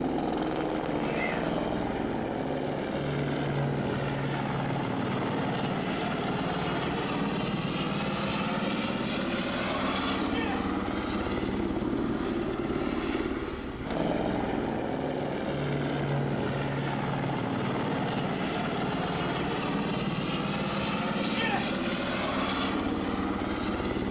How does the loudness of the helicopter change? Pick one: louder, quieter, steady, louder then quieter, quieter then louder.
steady.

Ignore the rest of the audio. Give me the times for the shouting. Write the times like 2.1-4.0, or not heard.
1.0-1.6, 10.2-10.6, 21.2-21.6.